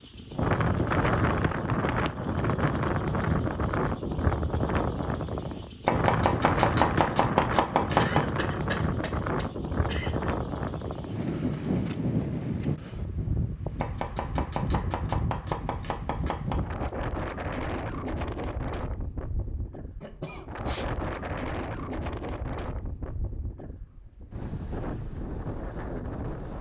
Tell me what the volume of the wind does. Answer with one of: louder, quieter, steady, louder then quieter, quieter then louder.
quieter.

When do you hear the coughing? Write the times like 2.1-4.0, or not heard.
8.0-10.3, 20.0-20.9.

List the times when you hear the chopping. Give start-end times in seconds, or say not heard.
5.8-8.2, 13.8-16.6.